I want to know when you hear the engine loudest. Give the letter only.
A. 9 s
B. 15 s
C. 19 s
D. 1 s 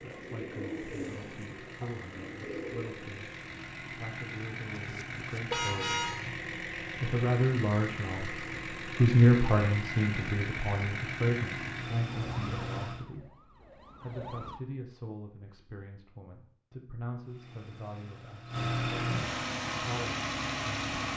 C.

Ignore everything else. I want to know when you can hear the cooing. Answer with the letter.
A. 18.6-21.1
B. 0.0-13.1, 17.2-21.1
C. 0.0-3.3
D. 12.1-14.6
C.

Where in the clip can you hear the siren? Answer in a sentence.
The siren can be heard from 12.1 to 14.6 s.